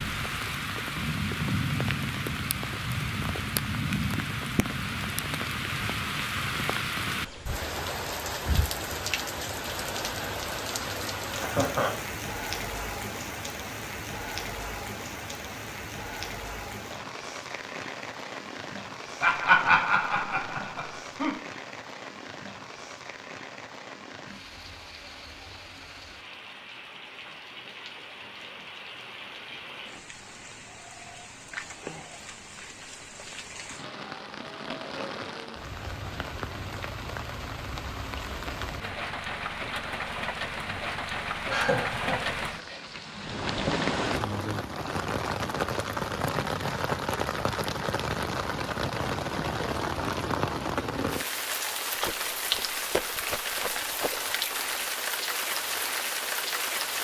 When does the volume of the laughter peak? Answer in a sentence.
The loudest moment of the laughter is at 20 seconds.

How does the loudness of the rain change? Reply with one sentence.
The volume of the rain goes down, then up.